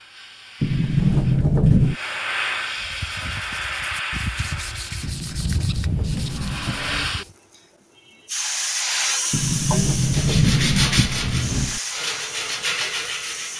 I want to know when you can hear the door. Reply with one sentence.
You can hear the door from 0.6 to 1.9 s, from 5.0 to 7.2 s and from 9.3 to 11.8 s.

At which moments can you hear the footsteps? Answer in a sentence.
You can't hear the footsteps here.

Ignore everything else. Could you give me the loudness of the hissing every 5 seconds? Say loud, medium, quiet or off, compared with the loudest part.
loud, loud, medium.